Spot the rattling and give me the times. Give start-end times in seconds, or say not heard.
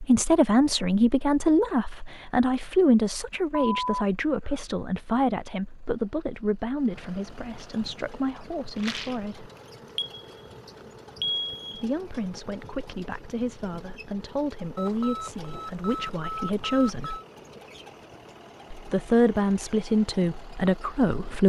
8.8-9.2.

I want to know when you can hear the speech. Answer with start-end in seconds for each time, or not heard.
0.0-9.5, 11.8-17.2, 18.7-21.4.